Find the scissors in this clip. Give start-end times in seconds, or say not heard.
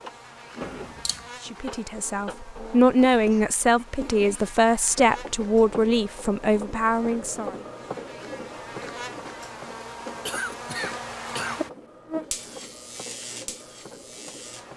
0.6-1.3.